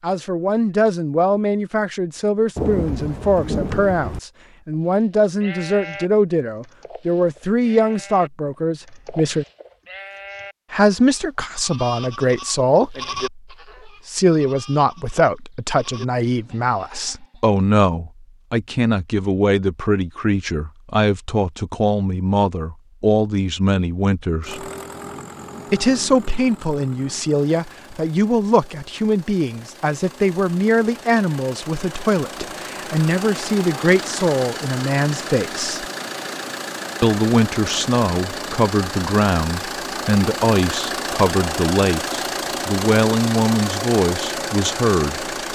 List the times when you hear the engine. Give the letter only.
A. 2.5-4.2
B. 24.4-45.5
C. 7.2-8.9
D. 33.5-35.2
B.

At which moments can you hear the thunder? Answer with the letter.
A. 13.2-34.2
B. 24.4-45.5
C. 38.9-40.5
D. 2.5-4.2
D.